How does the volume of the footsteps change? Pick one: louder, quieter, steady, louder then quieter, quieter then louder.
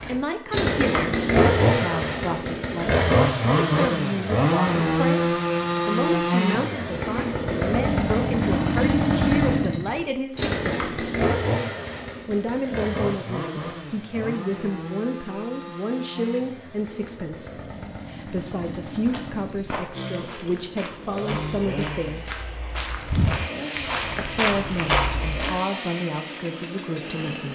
louder.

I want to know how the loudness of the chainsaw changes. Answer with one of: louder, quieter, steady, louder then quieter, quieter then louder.
quieter.